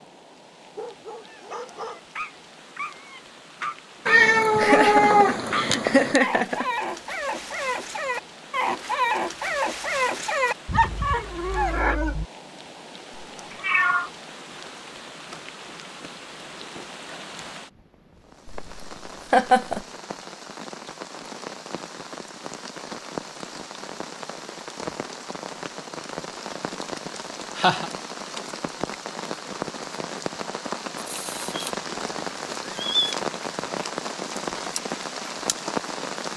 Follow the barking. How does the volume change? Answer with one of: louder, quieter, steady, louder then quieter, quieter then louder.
louder.